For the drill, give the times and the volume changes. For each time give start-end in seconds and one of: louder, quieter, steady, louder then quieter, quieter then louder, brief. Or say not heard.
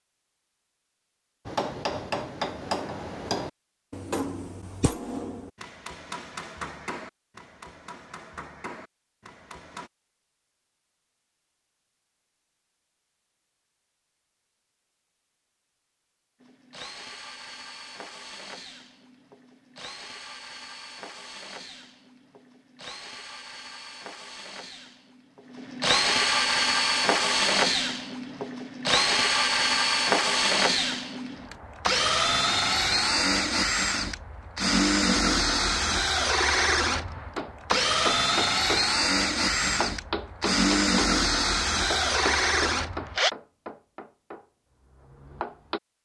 16.4-43.3 louder.